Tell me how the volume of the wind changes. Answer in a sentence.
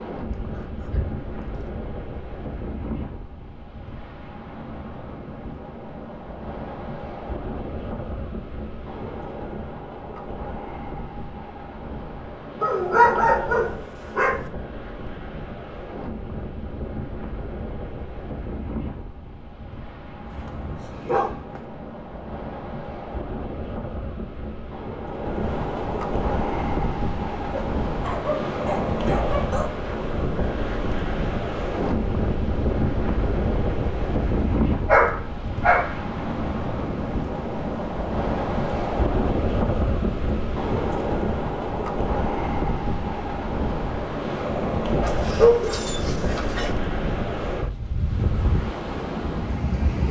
The volume of the wind goes up.